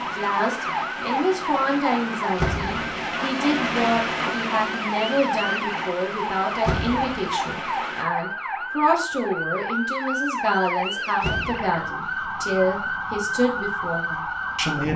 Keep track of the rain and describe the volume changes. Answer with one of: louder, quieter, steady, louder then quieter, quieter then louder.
louder then quieter.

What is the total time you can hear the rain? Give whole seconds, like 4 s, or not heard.
8 s.